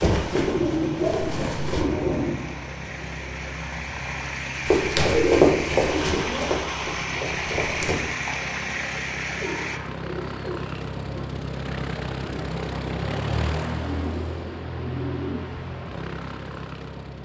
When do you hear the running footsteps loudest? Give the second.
5 s.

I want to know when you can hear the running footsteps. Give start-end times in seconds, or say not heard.
0.0-1.9, 4.7-8.0.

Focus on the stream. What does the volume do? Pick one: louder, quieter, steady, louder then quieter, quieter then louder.
louder.